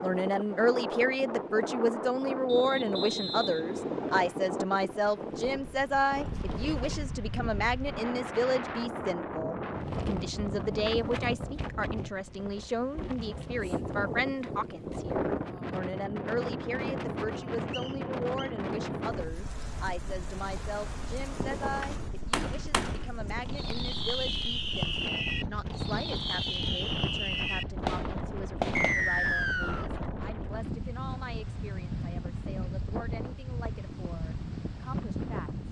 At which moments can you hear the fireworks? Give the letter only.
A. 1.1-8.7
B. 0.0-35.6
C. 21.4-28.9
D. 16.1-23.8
C.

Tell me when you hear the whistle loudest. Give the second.
29 s.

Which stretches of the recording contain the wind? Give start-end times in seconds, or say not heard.
0.0-35.6.